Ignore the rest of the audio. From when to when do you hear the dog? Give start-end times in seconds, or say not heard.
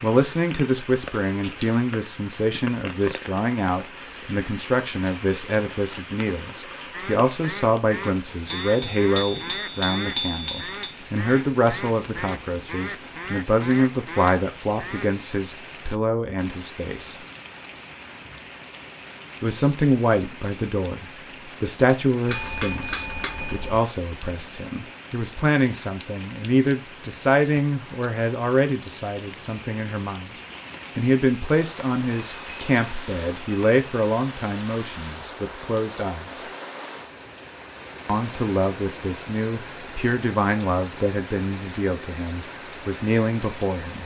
not heard.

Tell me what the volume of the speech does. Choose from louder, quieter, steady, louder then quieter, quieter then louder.
steady.